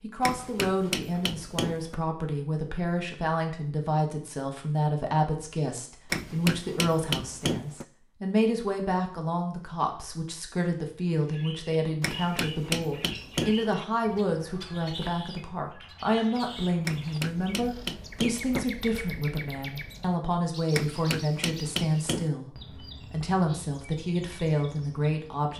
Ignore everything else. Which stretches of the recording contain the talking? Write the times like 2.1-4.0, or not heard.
0.0-25.5.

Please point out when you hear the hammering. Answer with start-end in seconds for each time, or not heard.
0.2-1.9, 6.1-7.8, 12.0-13.8, 16.9-18.6, 20.7-22.3.